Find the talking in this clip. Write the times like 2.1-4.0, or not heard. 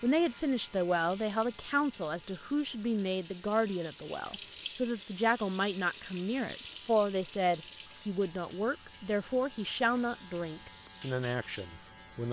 0.0-12.2.